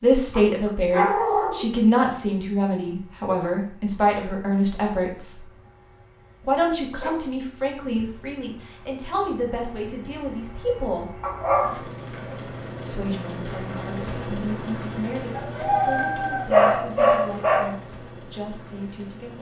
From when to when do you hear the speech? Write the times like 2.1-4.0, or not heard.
0.0-5.5, 6.5-11.2, 12.9-19.3.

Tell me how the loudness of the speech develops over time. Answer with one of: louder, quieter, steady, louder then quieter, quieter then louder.
quieter.